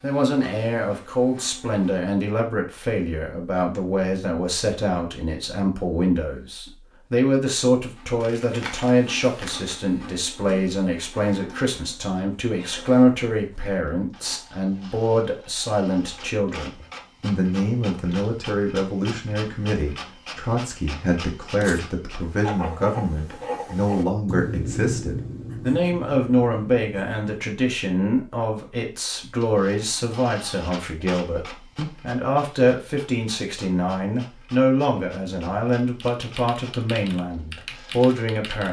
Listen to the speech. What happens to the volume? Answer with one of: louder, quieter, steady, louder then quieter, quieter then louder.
steady.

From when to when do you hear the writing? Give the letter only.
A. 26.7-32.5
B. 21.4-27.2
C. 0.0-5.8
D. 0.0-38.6
B.